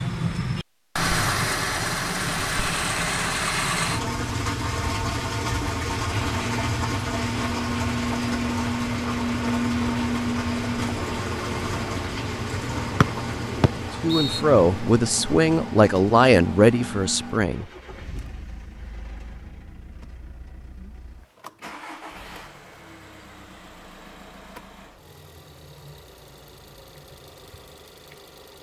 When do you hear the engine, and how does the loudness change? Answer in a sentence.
You can hear the engine from 0.0 to 28.5 s, getting quieter.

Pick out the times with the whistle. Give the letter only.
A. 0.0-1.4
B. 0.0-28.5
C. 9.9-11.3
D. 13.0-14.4
D.